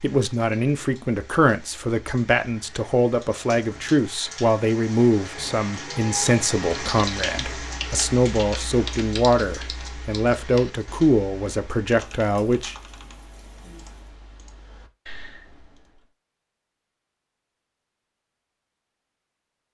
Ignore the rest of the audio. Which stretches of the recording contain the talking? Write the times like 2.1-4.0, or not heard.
0.0-12.8.